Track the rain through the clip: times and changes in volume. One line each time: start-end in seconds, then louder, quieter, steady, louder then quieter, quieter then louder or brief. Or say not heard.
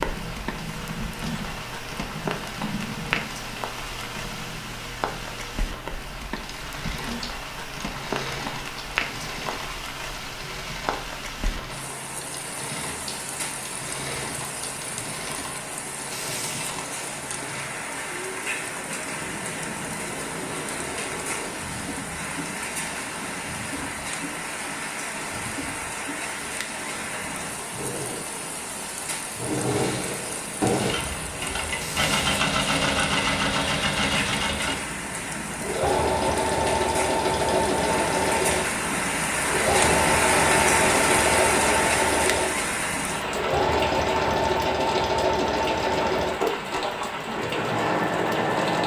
0.0-48.8 louder.